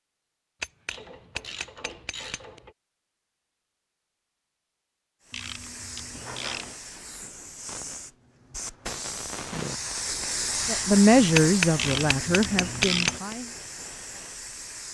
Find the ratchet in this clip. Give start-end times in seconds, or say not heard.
0.9-2.7, 5.3-6.8, 11.8-13.2.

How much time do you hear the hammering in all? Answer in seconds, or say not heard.
4 s.